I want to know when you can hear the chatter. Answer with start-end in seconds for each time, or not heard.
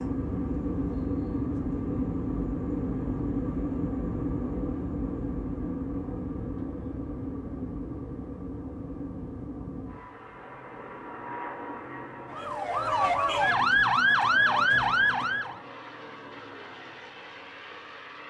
not heard.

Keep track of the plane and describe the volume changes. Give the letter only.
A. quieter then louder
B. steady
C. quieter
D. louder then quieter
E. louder
C.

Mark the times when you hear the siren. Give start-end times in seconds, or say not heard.
12.2-15.6.